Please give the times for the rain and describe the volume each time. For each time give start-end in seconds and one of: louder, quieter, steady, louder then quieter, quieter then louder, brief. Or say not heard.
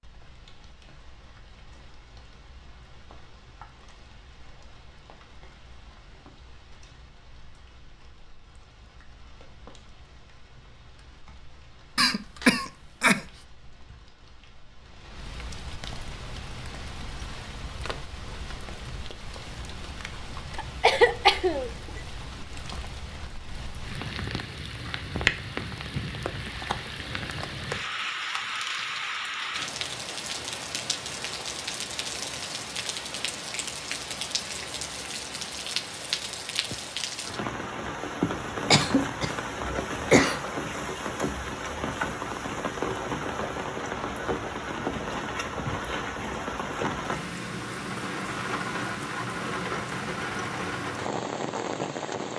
0.0-52.3 louder.